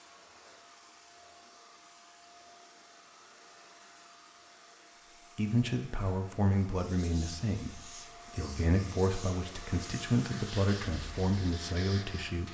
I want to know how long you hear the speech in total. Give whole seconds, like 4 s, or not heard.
7 s.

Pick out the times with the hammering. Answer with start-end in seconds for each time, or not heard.
not heard.